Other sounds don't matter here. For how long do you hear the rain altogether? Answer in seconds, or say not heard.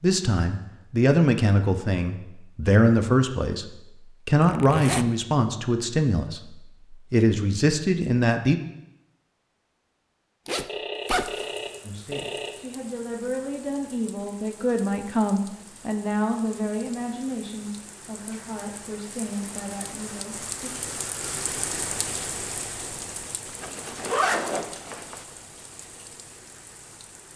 16 s.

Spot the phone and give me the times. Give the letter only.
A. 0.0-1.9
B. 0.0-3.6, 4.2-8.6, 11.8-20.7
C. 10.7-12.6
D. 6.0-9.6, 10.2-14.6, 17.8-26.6
C.